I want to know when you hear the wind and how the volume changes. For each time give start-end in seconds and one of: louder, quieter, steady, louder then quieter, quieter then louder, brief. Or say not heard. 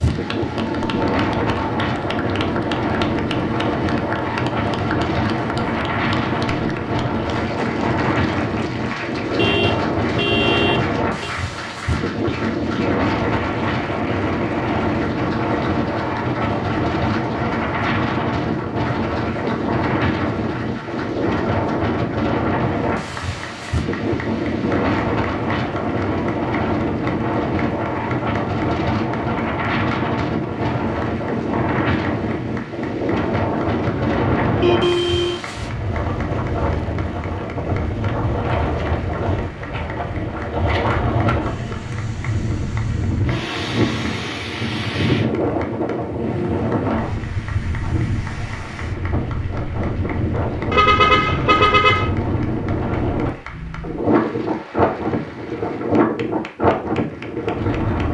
0.0-58.0 steady.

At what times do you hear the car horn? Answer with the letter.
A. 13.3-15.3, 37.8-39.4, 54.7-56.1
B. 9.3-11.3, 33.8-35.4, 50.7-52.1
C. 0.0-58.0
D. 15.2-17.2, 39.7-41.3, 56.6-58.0
B.